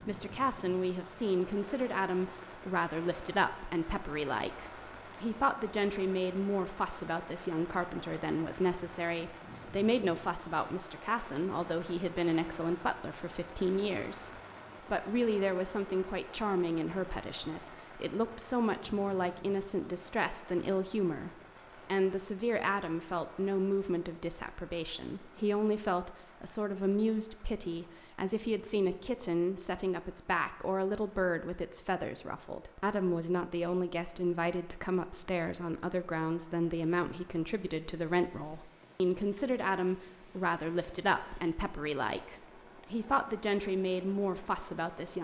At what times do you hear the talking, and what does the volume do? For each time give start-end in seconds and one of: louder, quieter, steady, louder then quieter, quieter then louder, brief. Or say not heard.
0.1-14.3 steady
14.9-45.1 steady.